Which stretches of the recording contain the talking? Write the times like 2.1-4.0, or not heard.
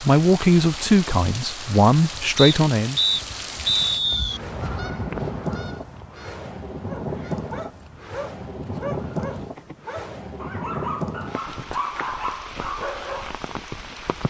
0.0-3.0.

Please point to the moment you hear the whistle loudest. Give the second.
4 s.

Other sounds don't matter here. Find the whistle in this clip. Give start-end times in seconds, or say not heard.
2.4-4.4.